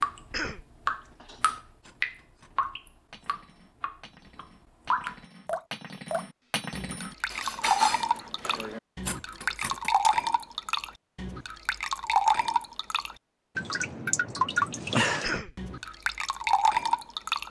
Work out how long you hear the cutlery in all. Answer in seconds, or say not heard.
9 s.